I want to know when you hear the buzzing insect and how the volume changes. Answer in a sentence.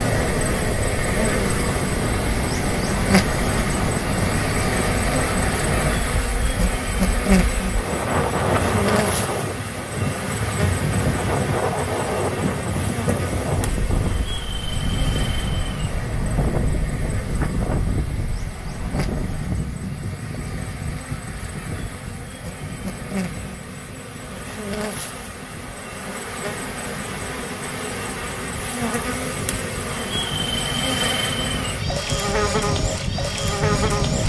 You can hear the buzzing insect from 0.0 to 34.2 s, getting quieter then louder.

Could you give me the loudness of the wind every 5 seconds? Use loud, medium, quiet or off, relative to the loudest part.
loud, loud, loud, loud, medium, quiet, loud.